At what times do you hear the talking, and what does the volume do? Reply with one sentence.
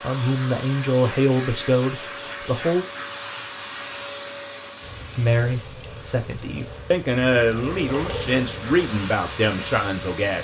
You can hear the talking briefly from 0.0 to 2.9 s; and from 5.2 to 10.3 s, getting louder.